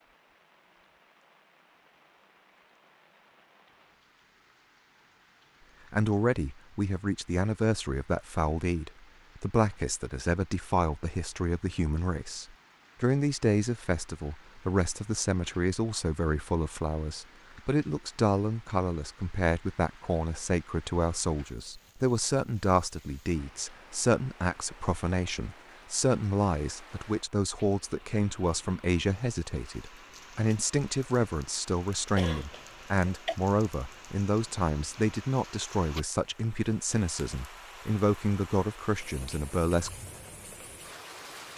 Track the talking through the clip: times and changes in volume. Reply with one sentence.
You can hear the talking from 5.9 to 39.9 s, at a steady volume.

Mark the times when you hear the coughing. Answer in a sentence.
You can hear the coughing from 32.1 to 33.4 s.